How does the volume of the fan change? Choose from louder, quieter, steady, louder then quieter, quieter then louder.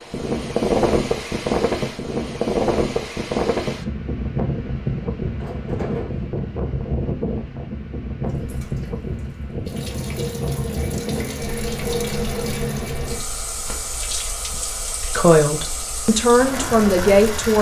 quieter.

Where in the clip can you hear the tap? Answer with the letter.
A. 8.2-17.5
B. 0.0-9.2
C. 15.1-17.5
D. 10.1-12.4
A.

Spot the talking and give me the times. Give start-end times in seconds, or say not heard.
15.1-17.5.